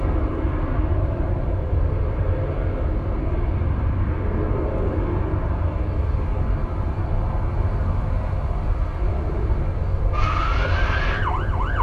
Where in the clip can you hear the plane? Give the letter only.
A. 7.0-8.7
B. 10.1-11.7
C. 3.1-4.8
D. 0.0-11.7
D.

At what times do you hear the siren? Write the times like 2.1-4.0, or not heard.
10.1-11.7.